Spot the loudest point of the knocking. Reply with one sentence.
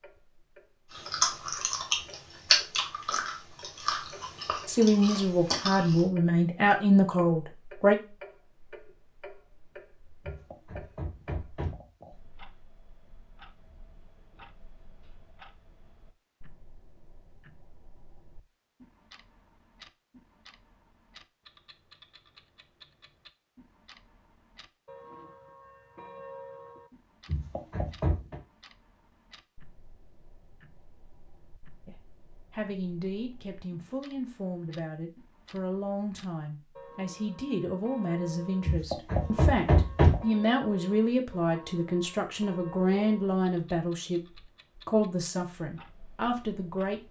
The loudest moment of the knocking is at 40 seconds.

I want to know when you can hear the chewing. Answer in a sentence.
You can hear the chewing from 0.9 to 6.0 s.